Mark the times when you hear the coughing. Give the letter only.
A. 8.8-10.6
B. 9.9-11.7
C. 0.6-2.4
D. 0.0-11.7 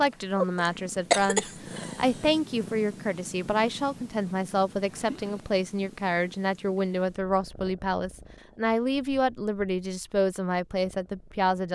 C.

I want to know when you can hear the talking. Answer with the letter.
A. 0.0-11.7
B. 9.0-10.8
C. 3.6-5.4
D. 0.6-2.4
A.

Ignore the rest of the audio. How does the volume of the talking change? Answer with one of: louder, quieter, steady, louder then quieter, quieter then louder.
steady.